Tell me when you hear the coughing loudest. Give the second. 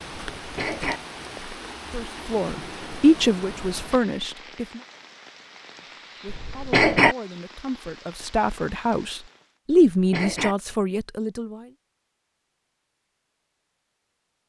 7 s.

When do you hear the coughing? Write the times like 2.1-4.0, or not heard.
0.3-1.0, 6.2-7.2, 9.7-10.6.